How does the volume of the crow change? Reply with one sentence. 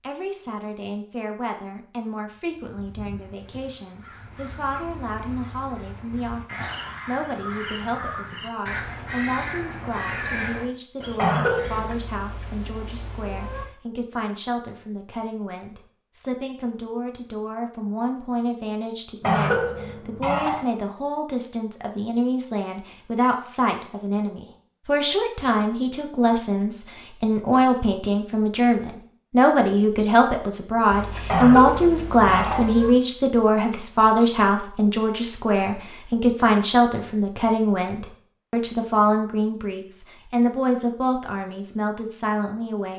The volume of the crow goes up.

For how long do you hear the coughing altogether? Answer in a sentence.
The coughing can be heard for 4 seconds in total.